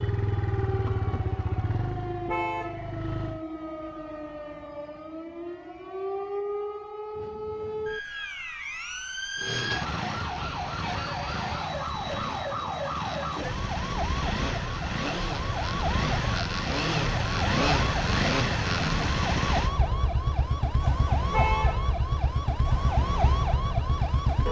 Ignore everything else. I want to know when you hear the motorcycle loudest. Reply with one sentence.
The loudest moment of the motorcycle is at 18 seconds.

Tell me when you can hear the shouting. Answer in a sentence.
You can't hear the shouting here.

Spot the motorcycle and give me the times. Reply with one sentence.
You can hear the motorcycle from 0.0 to 3.4 s and from 9.3 to 24.4 s.